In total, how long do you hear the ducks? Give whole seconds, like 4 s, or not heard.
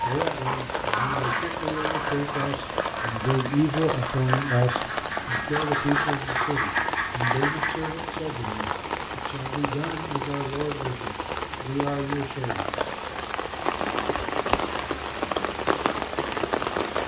8 s.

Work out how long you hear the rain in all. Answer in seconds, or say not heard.
17 s.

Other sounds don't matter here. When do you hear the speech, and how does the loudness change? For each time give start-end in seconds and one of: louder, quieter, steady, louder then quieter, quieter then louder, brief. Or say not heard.
0.0-12.8 louder then quieter.